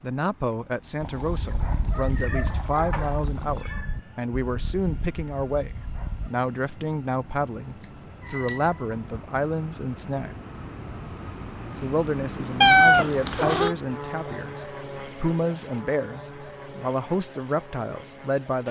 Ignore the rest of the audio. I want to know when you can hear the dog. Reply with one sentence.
The dog can be heard from 1.2 to 6.3 s.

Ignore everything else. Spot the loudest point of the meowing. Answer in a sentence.
The loudest moment of the meowing is at 13 seconds.